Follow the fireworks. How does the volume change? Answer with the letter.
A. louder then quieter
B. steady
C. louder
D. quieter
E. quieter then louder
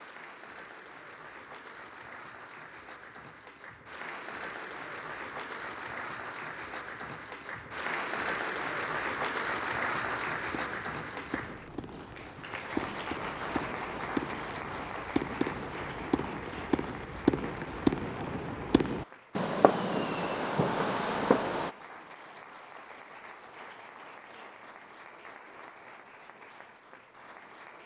C.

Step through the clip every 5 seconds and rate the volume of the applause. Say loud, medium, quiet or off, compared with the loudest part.
medium, loud, loud, medium, quiet, quiet.